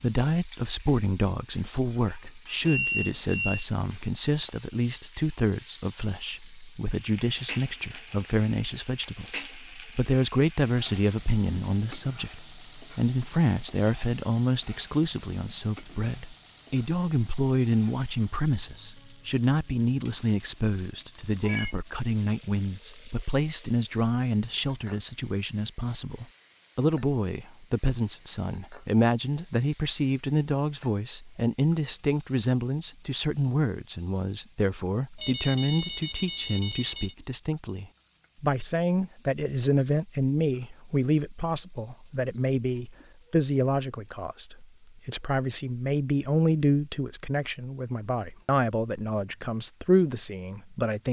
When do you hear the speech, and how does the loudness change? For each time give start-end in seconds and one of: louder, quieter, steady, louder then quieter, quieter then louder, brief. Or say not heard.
0.0-51.0 steady.